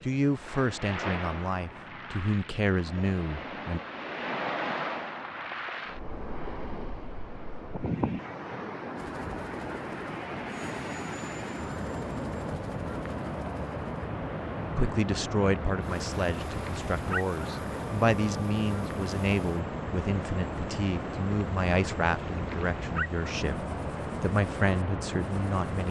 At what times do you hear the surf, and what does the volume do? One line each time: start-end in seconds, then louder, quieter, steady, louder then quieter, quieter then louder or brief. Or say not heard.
0.0-25.8 steady.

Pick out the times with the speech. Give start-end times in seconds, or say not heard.
0.0-3.8, 14.8-25.8.